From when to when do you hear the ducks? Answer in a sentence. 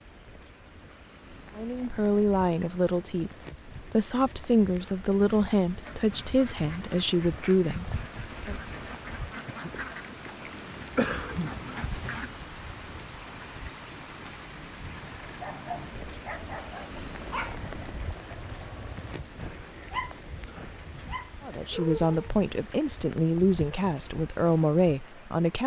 The ducks can be heard from 5.7 to 12.3 s.